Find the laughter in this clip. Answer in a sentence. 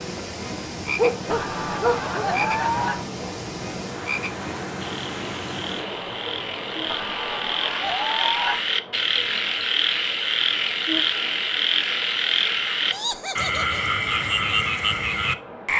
You can hear the laughter from 1.3 to 3.0 s, from 6.8 to 8.6 s and from 12.9 to 13.8 s.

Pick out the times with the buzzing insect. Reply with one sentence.
The buzzing insect can't be heard in this clip.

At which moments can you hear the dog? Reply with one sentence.
The dog can be heard from 0.9 to 2.2 s.